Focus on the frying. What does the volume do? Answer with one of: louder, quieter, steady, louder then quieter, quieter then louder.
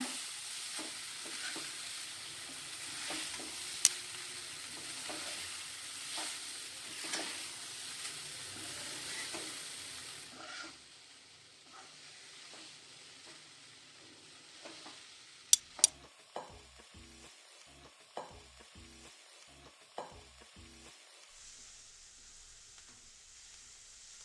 quieter.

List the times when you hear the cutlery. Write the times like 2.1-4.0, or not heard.
15.5-15.9.